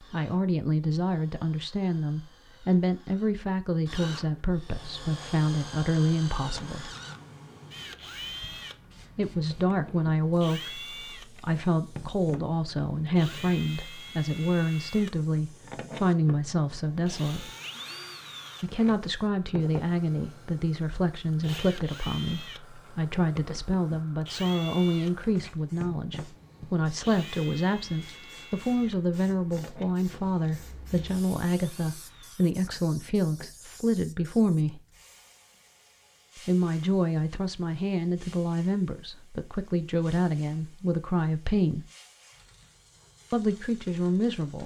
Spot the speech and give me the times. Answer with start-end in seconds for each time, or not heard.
0.1-7.0, 9.2-17.5, 18.6-34.8, 36.5-41.9, 43.3-44.6.